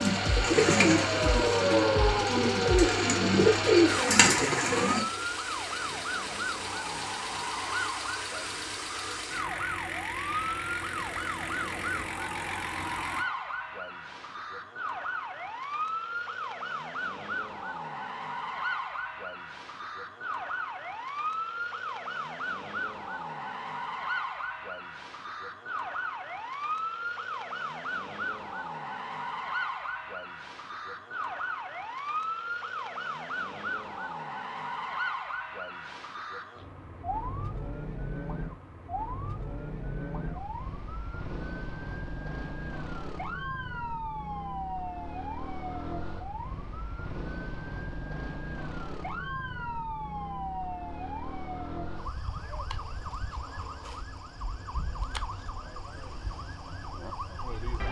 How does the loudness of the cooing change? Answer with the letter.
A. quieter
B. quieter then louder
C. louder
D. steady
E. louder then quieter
B.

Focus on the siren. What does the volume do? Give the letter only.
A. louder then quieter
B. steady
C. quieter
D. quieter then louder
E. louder
C.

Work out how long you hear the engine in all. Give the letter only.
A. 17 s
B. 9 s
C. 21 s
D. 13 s
D.